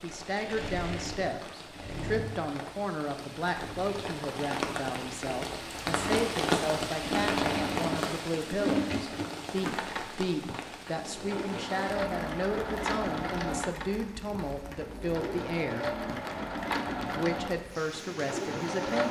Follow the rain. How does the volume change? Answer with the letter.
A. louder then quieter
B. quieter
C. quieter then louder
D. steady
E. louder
A.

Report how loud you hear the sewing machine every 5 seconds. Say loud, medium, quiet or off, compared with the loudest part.
medium, loud, loud, loud.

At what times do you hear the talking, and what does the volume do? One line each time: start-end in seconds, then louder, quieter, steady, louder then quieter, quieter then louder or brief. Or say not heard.
0.0-15.9 steady
17.1-19.0 brief.